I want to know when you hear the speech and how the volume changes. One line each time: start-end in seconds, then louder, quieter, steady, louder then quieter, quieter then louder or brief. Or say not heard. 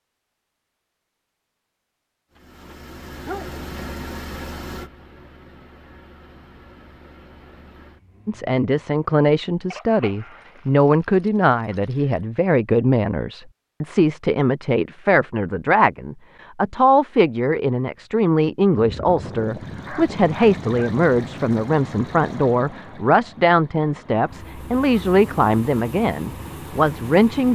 8.2-27.5 steady.